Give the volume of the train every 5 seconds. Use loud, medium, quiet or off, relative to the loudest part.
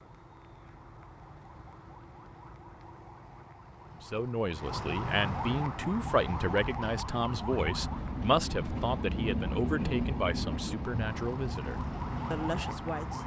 off, loud, loud.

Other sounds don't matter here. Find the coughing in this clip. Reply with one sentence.
You can't hear the coughing here.